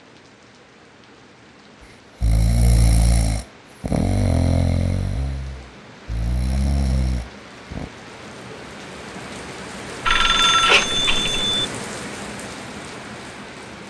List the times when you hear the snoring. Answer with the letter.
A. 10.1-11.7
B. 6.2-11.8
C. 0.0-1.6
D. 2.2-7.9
D.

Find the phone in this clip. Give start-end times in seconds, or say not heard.
10.1-11.7.